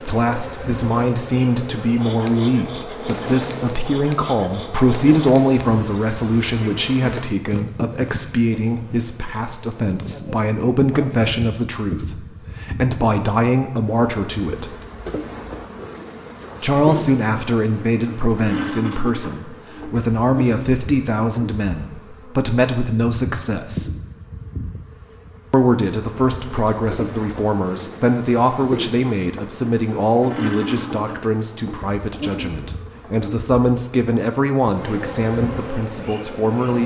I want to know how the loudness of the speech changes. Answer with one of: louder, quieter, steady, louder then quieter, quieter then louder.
steady.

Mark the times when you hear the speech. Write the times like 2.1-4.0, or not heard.
0.0-14.8, 16.6-24.0, 25.5-36.8.